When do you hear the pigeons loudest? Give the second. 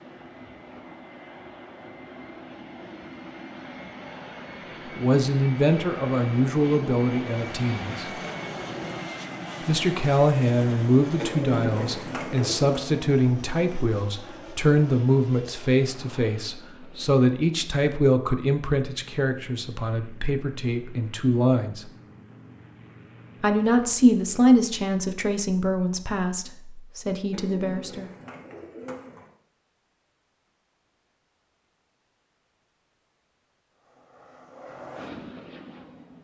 12 s.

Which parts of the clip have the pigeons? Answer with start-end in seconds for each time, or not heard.
11.2-12.8, 27.3-29.3.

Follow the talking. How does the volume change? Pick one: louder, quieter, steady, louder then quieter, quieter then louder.
steady.